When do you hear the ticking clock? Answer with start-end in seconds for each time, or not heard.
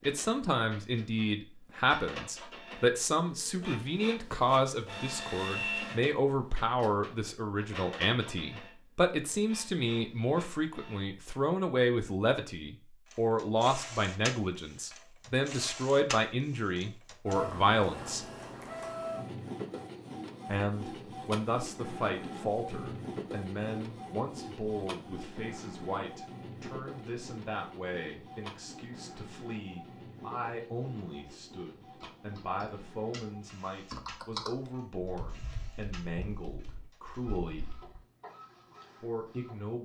not heard.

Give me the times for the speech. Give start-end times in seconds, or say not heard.
0.1-18.2, 20.4-37.6, 39.0-39.8.